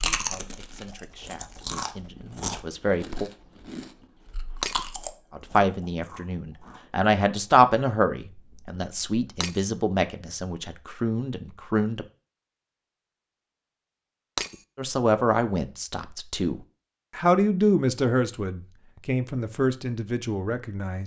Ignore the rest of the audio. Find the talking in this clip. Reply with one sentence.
The talking can be heard from 0.0 to 3.3 s, from 5.3 to 12.1 s and from 14.8 to 21.0 s.